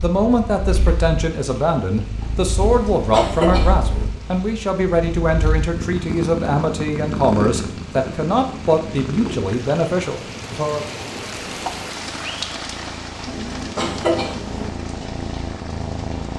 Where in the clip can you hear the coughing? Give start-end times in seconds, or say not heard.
2.6-4.0, 13.2-14.7.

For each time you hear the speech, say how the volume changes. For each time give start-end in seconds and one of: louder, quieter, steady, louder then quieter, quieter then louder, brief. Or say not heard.
0.0-10.8 steady.